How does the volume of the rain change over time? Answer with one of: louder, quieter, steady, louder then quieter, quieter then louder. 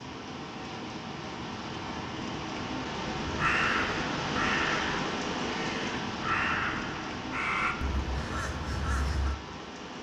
louder then quieter.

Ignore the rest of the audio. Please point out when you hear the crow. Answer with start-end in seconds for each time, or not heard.
3.4-9.3.